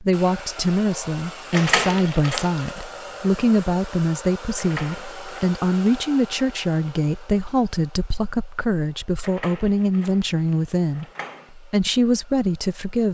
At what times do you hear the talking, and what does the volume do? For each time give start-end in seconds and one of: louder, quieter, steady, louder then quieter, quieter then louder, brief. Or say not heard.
0.0-13.1 steady.